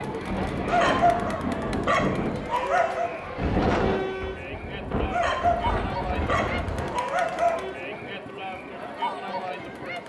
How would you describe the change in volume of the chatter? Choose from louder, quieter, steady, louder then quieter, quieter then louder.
steady.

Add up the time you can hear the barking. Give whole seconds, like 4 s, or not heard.
5 s.